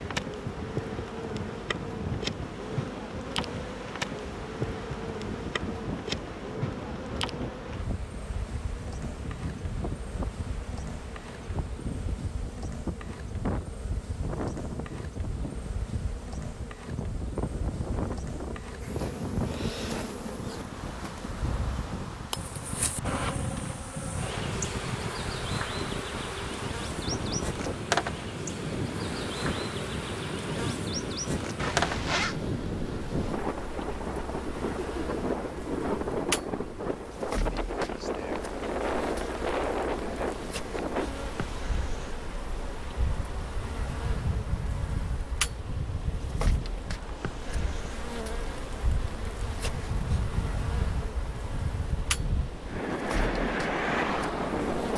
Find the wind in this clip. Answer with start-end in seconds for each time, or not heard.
0.0-54.9.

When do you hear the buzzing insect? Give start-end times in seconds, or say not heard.
0.0-54.9.